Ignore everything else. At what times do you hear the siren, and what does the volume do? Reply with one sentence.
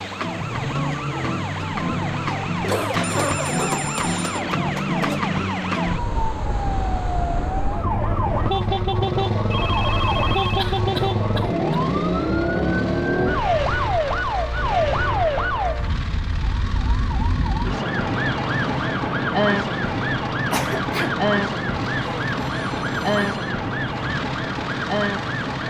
The siren can be heard from 0.0 to 25.6 s, at a steady volume.